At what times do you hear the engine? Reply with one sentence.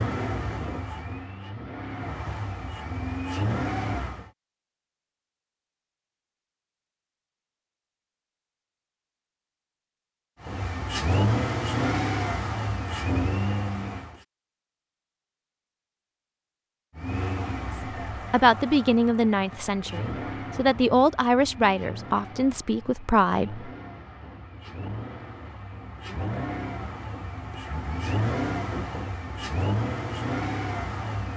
You can hear the engine from 0.0 to 4.3 s, from 10.4 to 14.2 s and from 16.9 to 31.3 s.